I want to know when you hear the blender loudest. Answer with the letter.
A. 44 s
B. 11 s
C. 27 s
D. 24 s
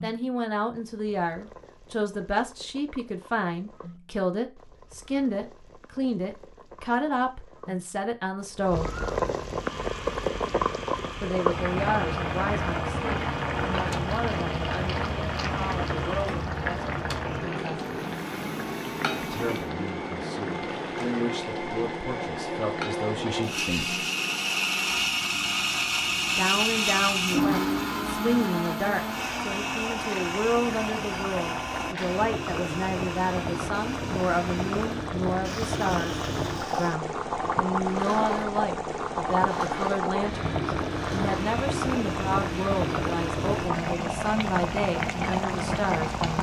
C.